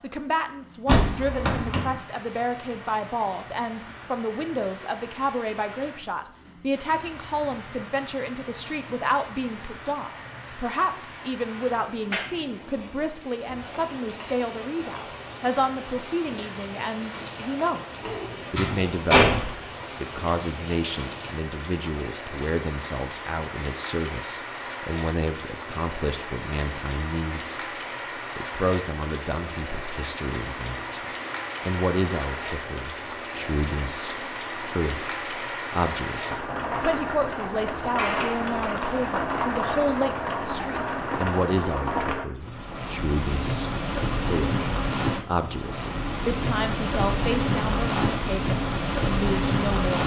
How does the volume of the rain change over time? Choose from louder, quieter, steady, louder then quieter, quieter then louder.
louder.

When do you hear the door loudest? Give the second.
19 s.